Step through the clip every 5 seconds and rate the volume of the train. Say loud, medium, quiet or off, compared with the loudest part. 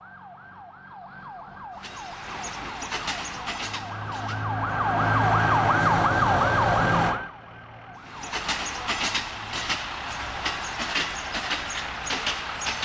medium, loud, loud.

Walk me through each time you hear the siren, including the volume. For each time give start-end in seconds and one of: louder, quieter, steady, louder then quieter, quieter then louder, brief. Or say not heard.
0.0-12.7 louder then quieter.